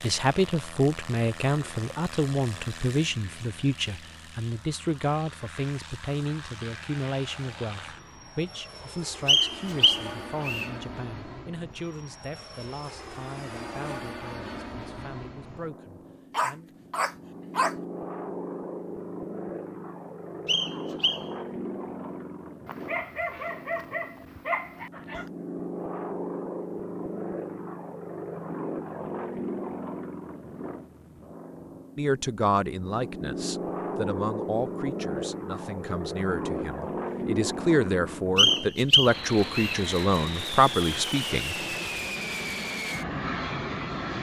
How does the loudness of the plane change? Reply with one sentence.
The loudness of the plane goes up.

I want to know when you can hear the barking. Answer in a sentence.
The barking can be heard from 16.3 to 17.8 s and from 22.6 to 25.2 s.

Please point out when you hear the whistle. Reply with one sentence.
The whistle can be heard from 9.2 to 10.7 s, from 20.4 to 21.2 s and from 38.4 to 39.8 s.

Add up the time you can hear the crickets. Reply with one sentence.
The crickets can't be heard in this clip.